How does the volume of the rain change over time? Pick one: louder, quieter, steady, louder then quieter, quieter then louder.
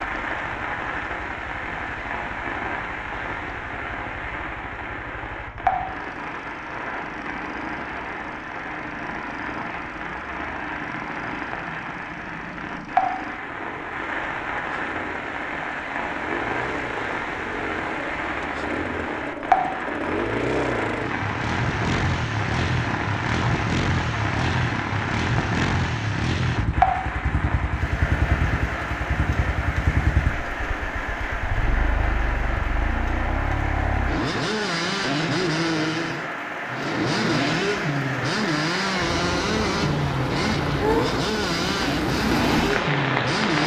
steady.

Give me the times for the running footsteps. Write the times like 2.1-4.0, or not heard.
not heard.